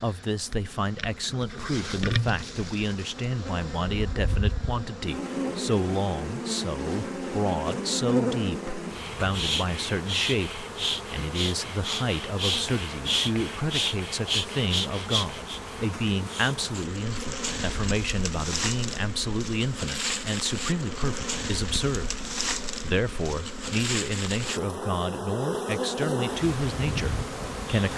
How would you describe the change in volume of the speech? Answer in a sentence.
The volume of the speech stays about the same.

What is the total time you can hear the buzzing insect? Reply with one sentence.
You can hear the buzzing insect for 28 seconds altogether.